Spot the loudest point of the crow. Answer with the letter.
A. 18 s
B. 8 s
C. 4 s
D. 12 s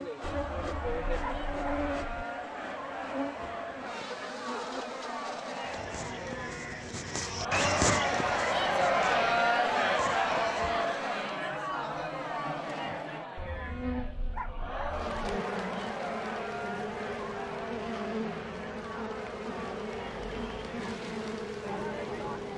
B.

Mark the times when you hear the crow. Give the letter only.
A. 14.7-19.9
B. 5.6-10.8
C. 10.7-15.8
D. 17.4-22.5
B.